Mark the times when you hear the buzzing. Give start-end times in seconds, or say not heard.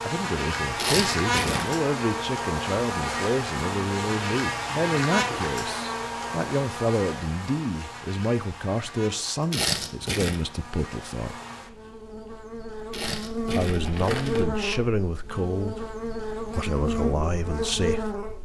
0.0-18.4.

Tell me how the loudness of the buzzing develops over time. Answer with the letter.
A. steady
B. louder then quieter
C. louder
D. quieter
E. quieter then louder
E.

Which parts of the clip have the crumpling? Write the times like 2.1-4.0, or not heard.
0.8-1.8, 9.5-10.5, 12.9-14.4.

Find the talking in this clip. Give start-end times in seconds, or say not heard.
0.0-11.3, 13.4-18.1.